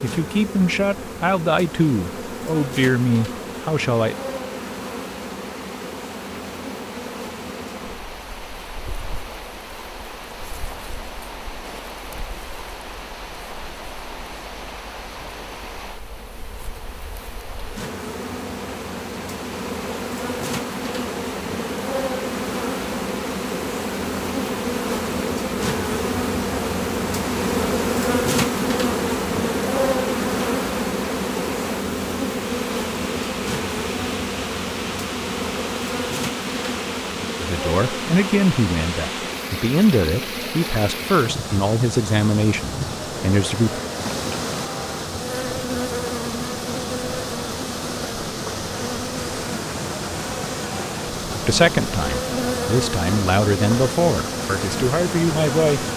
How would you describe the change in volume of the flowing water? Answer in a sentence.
The volume of the flowing water goes up.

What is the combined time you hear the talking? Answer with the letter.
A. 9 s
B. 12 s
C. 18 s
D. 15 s
D.